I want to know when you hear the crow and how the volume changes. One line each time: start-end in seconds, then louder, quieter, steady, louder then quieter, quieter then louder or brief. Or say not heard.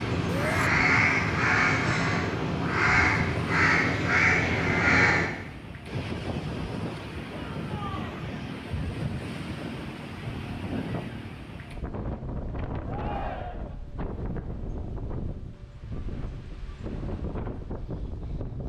0.0-5.3 steady.